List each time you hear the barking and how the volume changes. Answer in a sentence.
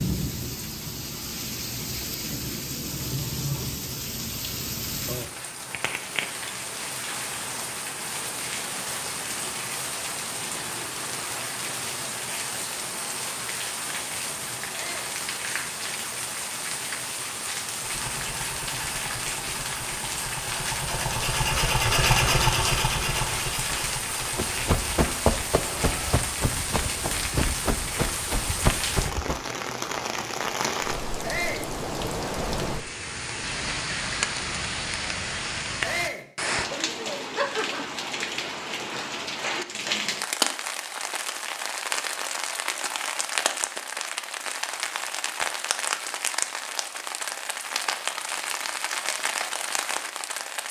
You can't hear the barking here.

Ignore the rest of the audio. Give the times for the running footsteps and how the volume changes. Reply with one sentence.
The running footsteps can be heard from 24.4 to 29.4 s, getting quieter then louder.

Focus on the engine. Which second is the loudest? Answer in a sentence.
The volume of the engine peaks at 22 seconds.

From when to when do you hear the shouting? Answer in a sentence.
The shouting can be heard from 14.7 to 15.1 s, from 31.2 to 31.7 s and from 35.8 to 36.2 s.